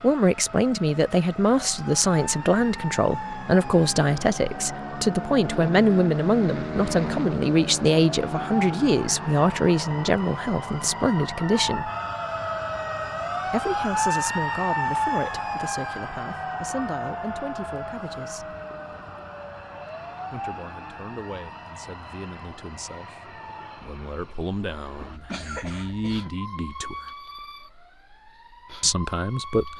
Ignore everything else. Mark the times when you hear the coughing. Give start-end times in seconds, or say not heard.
25.0-26.2.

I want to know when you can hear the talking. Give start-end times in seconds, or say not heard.
0.0-11.9, 13.4-18.6, 20.3-27.1, 28.8-29.7.